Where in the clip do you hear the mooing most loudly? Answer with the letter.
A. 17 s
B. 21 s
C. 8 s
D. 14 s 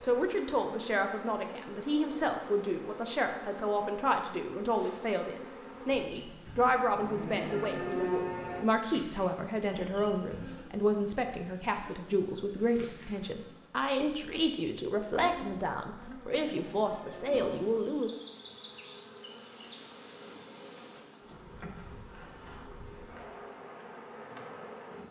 C.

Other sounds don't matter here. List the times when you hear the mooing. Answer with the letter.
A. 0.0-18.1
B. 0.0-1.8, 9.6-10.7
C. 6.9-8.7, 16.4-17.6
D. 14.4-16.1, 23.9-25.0
C.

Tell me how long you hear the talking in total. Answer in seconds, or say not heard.
18 s.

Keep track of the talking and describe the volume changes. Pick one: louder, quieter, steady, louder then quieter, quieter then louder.
steady.